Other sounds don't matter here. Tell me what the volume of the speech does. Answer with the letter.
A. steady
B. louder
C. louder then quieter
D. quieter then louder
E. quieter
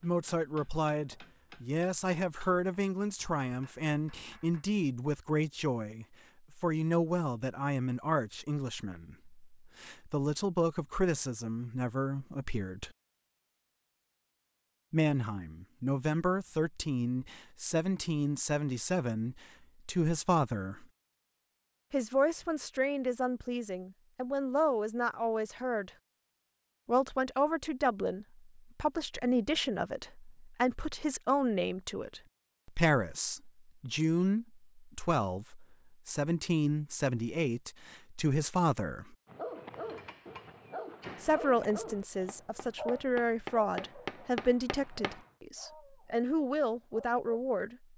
A.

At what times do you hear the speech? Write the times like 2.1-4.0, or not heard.
0.0-12.9, 14.9-20.9, 21.9-25.9, 26.9-39.1, 41.2-47.8.